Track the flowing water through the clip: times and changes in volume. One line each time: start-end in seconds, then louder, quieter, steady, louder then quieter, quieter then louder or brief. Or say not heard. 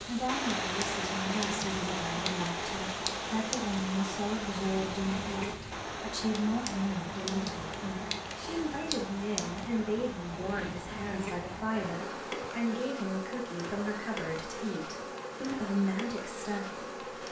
0.0-17.2 quieter.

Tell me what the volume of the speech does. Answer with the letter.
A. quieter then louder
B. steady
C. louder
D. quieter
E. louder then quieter
B.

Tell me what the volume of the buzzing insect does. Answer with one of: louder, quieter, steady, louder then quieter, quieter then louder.
steady.